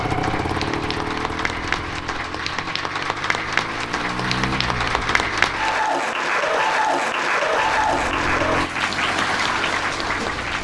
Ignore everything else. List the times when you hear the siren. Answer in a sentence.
The siren can't be heard in this clip.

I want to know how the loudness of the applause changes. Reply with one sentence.
The loudness of the applause goes up.